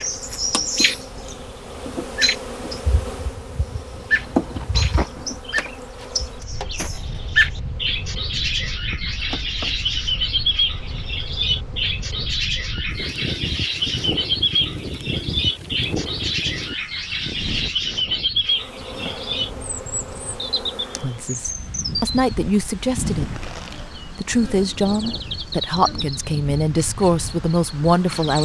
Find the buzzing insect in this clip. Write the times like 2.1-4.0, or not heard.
0.0-12.3, 18.4-21.6, 23.2-28.4.